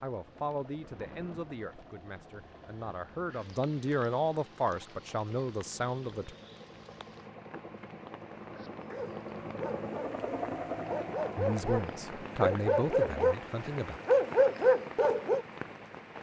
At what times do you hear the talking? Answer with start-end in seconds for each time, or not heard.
0.0-6.3, 11.3-14.0.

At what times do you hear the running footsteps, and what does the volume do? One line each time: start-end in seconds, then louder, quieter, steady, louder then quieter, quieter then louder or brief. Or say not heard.
not heard.